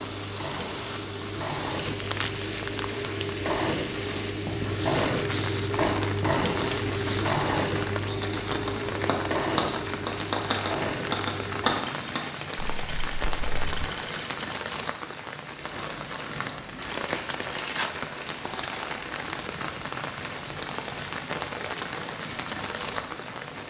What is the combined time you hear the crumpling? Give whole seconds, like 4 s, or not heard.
3 s.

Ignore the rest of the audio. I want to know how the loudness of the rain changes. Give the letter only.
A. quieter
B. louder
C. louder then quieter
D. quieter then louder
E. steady
E.